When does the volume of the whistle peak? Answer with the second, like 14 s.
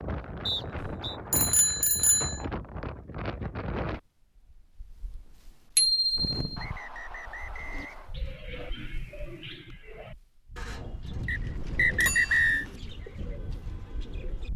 12 s.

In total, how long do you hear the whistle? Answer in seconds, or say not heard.
4 s.